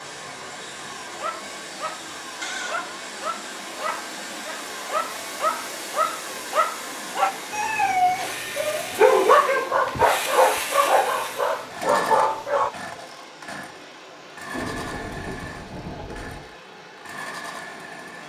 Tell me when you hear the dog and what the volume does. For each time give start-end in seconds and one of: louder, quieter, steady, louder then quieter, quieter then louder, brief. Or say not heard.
1.1-12.7 louder.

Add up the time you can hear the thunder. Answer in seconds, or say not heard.
2 s.